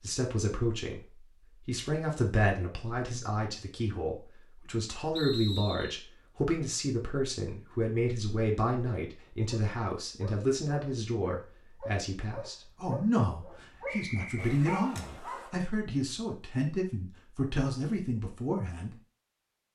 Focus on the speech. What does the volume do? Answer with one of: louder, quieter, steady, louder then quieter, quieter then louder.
steady.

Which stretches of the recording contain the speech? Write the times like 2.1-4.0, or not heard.
0.0-18.9.